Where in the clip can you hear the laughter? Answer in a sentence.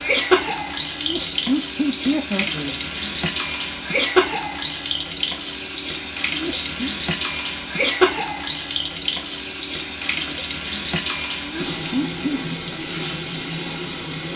The laughter can be heard from 0.9 to 2.8 s, from 6.3 to 6.8 s and from 11.4 to 12.6 s.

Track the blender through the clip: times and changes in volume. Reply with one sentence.
The blender can't be heard in this clip.